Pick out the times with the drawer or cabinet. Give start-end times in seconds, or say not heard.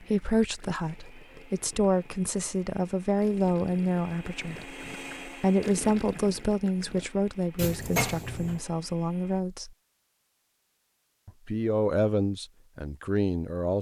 7.5-8.6.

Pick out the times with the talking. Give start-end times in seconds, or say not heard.
0.0-9.7, 11.2-13.7.